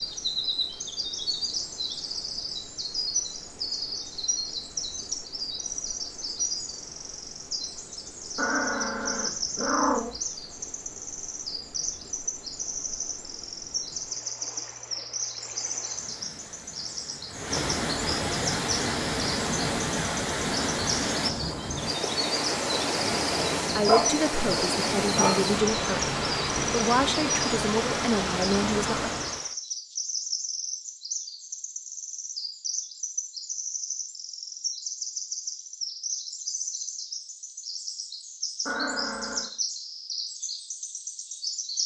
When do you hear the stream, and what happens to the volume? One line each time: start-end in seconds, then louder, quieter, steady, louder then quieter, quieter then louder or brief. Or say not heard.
0.0-29.6 louder.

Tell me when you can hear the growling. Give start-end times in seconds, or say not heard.
8.3-10.2, 23.1-25.6, 38.6-39.5.